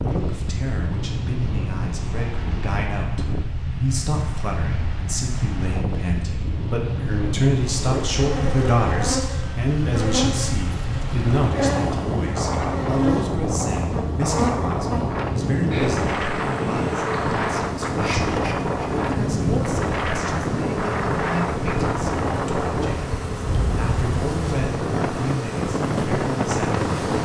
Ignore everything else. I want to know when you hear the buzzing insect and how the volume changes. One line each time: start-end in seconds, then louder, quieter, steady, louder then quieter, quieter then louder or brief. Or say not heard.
7.7-27.2 steady.